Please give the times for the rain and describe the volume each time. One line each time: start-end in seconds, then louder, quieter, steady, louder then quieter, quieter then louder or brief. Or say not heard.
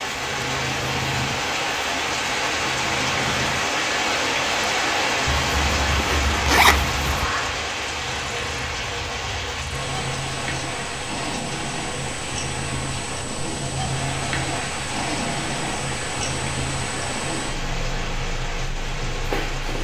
0.0-19.7 quieter.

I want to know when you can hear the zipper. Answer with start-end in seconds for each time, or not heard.
5.2-7.3.